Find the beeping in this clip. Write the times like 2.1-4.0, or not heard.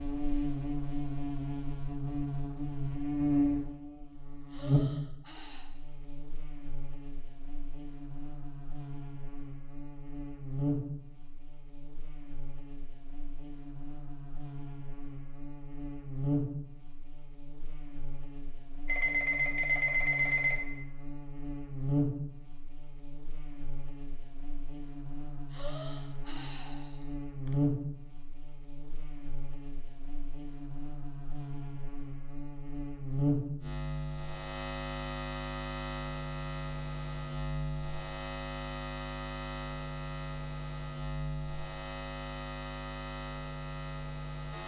18.9-20.6.